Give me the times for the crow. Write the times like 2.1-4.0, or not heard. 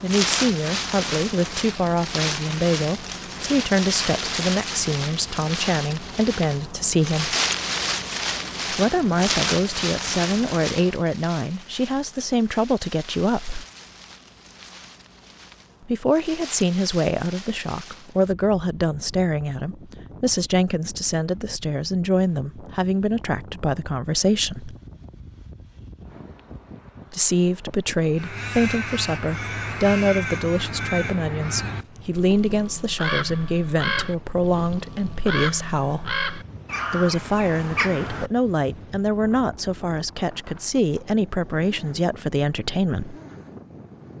28.1-38.3.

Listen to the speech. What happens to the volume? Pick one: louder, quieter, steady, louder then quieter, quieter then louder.
steady.